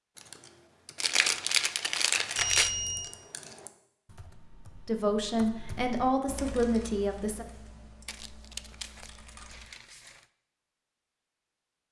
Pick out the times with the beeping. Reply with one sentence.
The beeping can be heard from 2.4 to 3.1 s.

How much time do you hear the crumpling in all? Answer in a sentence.
You can hear the crumpling for 4 seconds altogether.